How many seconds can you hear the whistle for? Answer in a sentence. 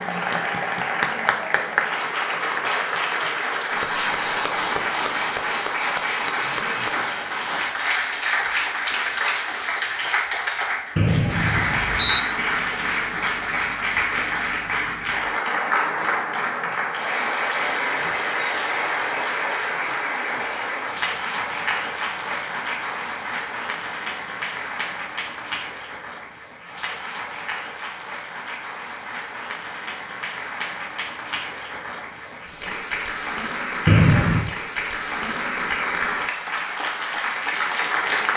You can hear the whistle for 2 seconds altogether.